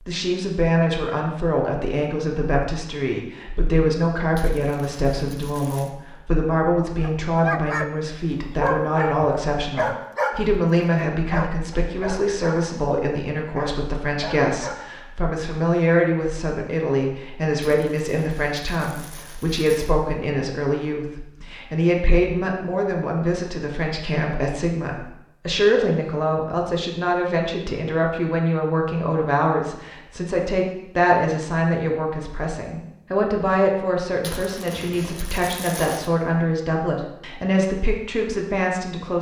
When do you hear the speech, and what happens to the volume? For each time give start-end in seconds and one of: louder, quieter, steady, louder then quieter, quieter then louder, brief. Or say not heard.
0.1-39.1 steady.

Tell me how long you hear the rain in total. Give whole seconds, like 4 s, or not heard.
not heard.